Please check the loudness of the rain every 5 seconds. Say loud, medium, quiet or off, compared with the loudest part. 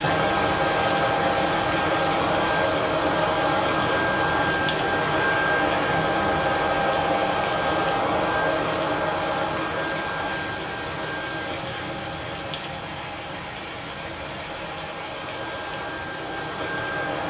loud, loud, medium, medium.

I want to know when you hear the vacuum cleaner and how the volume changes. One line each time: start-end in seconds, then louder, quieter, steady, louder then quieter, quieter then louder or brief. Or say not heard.
0.0-17.2 quieter.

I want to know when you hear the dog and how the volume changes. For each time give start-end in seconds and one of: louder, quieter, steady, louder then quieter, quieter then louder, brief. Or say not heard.
not heard.